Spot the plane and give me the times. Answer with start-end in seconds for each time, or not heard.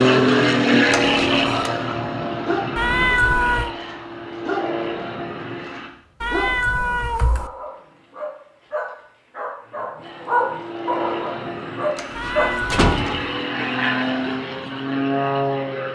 0.0-5.9, 10.0-15.9.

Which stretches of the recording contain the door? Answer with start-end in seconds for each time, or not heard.
0.9-1.7, 11.9-13.3.